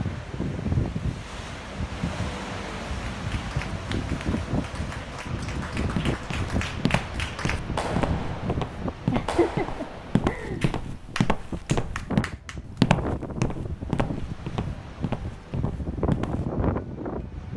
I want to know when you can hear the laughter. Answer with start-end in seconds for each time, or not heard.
9.1-10.7.